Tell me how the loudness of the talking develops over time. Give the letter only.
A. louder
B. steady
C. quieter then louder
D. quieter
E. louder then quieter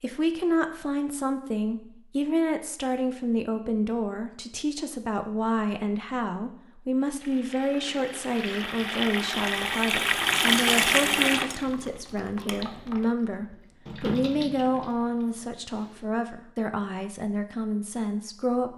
B.